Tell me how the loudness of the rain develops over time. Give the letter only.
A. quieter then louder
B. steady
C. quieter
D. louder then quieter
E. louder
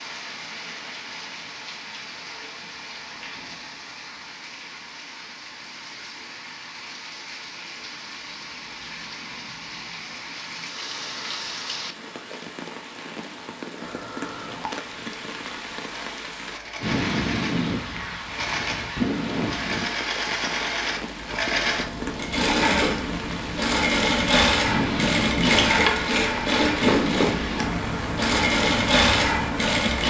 E.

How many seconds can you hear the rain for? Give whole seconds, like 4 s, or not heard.
30 s.